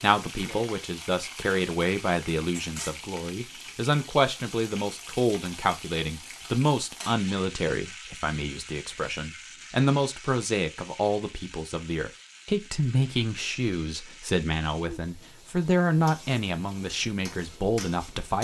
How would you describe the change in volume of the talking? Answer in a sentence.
The volume of the talking stays about the same.